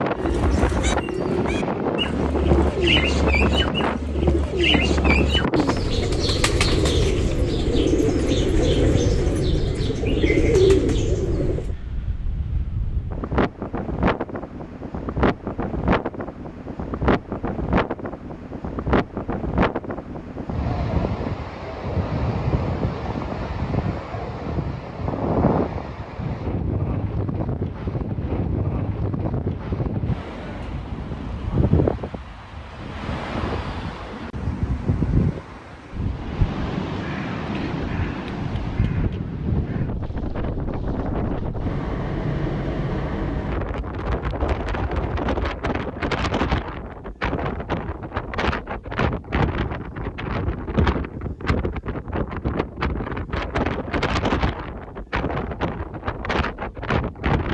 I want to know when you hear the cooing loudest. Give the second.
11 s.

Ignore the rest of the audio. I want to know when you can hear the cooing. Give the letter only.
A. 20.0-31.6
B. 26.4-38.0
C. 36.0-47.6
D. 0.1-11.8
D.